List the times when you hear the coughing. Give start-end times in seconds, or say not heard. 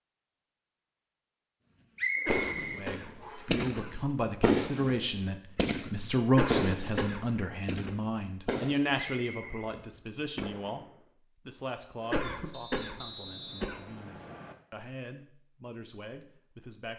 2.1-4.0, 6.2-7.9, 12.0-13.8.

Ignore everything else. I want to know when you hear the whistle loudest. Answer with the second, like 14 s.
2 s.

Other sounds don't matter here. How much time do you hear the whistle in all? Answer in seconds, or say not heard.
4 s.